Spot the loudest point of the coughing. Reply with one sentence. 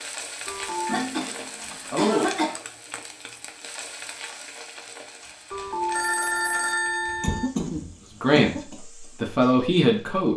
The loudest moment of the coughing is at 2 seconds.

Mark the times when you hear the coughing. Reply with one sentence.
The coughing can be heard from 0.8 to 2.5 s and from 7.0 to 8.8 s.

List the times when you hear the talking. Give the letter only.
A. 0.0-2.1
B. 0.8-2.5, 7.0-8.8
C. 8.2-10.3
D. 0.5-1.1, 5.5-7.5
C.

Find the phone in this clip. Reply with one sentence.
The phone can be heard from 0.5 to 1.1 s and from 5.5 to 7.5 s.